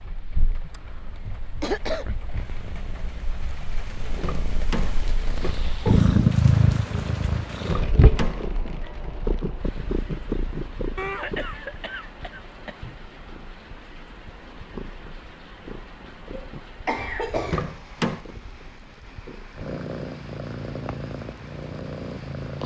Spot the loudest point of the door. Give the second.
18 s.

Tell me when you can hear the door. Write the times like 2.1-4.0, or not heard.
4.1-5.6, 7.6-8.5, 17.4-18.2.